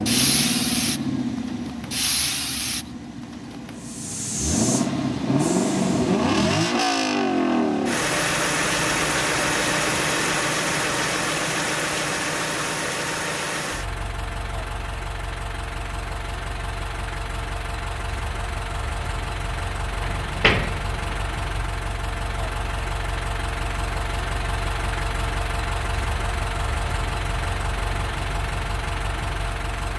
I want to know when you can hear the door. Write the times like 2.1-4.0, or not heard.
20.0-21.2.